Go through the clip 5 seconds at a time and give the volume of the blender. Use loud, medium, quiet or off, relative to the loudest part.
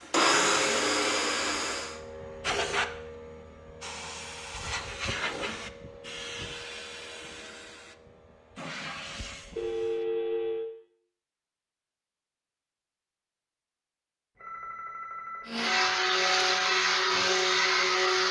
loud, off, off, loud.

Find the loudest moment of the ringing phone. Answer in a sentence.
The loudest moment of the ringing phone is at 10 seconds.